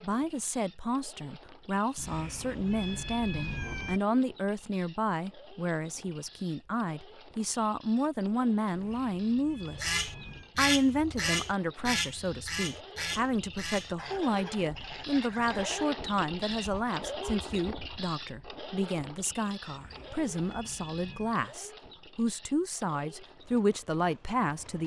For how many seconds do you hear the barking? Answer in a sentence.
You can't hear the barking here.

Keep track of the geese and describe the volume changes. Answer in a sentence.
The loudness of the geese goes down.